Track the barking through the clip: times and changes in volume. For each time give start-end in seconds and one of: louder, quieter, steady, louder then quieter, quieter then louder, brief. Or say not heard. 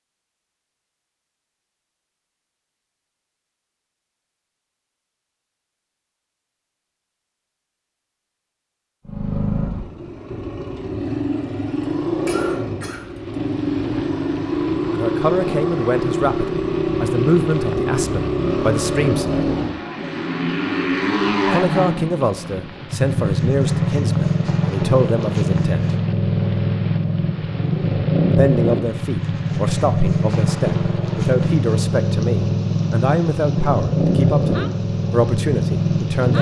not heard.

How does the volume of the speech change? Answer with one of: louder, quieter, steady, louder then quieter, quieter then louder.
steady.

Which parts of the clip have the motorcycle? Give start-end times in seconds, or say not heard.
9.1-36.3.